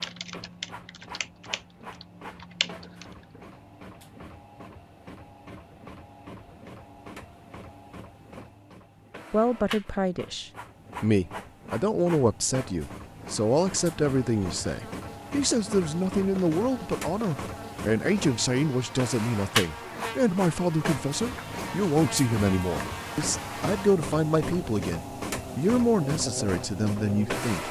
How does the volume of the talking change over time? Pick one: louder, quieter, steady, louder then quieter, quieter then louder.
steady.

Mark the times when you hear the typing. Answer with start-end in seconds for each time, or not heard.
0.0-3.0.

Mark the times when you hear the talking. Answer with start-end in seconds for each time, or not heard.
9.3-27.6.